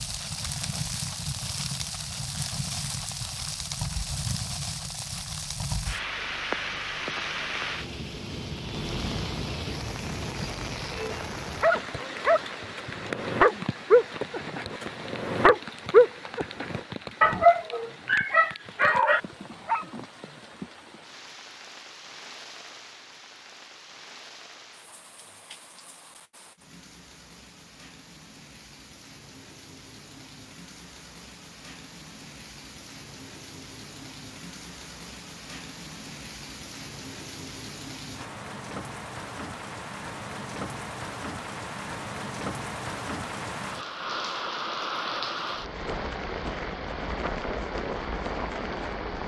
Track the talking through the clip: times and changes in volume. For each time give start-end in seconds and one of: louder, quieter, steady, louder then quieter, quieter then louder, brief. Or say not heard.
not heard.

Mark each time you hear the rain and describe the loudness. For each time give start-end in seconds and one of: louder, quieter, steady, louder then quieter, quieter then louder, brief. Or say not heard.
0.0-49.2 quieter then louder.